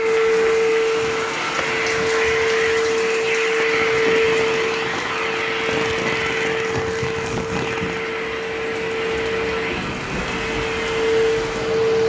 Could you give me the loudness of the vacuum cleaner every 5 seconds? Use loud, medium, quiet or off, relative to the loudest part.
loud, medium, loud.